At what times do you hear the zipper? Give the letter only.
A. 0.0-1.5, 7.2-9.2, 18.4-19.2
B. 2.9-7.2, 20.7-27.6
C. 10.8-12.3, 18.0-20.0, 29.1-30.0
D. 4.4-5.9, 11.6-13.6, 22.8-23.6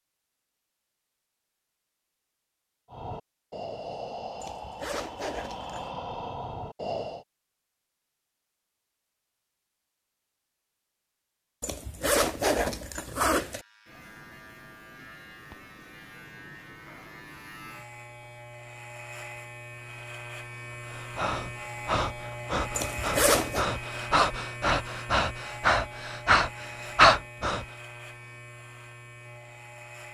D.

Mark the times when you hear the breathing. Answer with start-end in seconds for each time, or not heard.
2.9-7.2, 20.7-27.6.